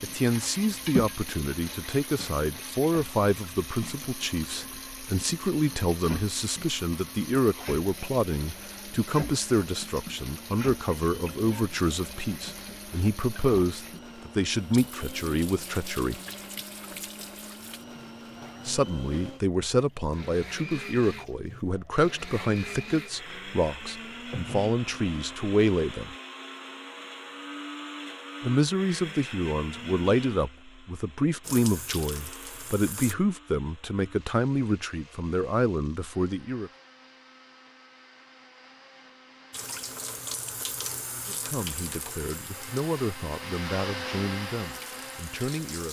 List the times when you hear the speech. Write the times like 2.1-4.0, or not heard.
0.0-16.2, 18.6-26.1, 28.4-36.7, 41.2-45.8.